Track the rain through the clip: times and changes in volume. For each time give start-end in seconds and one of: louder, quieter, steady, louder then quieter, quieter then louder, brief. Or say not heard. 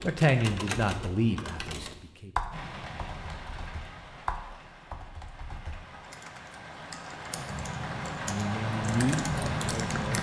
2.5-10.1 quieter then louder.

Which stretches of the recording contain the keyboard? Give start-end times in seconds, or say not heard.
0.0-10.1.